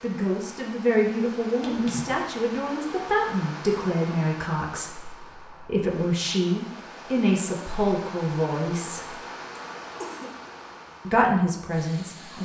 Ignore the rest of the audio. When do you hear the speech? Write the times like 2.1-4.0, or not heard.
0.0-9.2, 11.1-12.3.